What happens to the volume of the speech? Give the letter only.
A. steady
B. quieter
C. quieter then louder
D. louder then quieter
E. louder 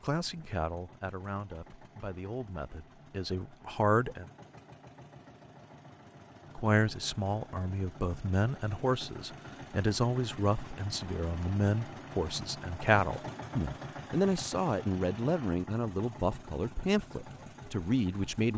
E.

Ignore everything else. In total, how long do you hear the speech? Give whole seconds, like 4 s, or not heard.
16 s.